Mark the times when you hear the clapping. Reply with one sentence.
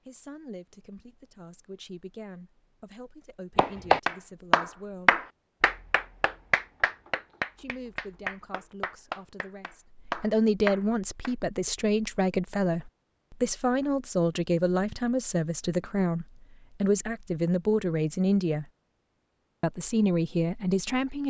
The clapping can be heard from 3.5 to 11.3 s.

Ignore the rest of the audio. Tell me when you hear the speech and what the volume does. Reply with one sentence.
The speech can be heard from 0.1 to 5.2 s, at a steady volume; from 7.5 to 18.6 s, getting louder; and briefly from 19.6 to 21.2 s.